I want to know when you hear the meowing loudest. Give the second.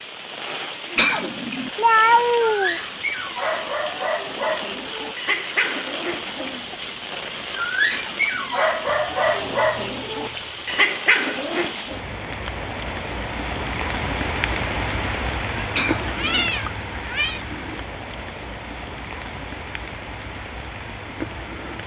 2 s.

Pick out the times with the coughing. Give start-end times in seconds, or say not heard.
0.9-1.7, 7.8-8.7, 15.8-16.5.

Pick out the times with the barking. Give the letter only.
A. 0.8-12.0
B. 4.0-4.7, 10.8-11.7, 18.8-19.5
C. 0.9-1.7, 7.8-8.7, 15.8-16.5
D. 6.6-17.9
A.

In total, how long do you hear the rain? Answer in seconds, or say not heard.
22 s.